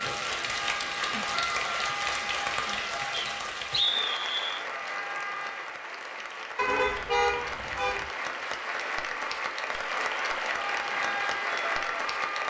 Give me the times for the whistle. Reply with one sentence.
The whistle can be heard from 3.1 to 4.7 s.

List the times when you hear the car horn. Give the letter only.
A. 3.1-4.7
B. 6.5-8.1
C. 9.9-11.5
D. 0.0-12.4
B.